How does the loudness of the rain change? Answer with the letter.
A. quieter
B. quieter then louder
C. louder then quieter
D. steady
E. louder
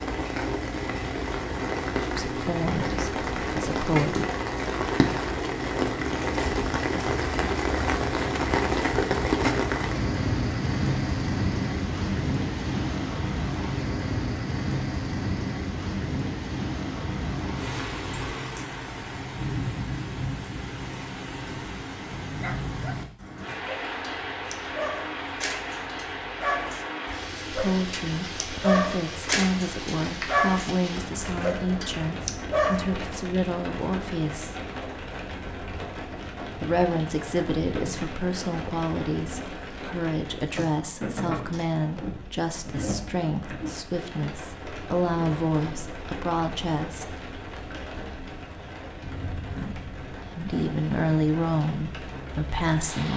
A.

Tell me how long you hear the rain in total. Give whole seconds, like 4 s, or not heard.
53 s.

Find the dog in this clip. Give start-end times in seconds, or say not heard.
22.4-33.0.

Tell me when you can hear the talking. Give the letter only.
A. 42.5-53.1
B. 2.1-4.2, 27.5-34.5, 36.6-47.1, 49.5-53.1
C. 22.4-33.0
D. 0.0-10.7
B.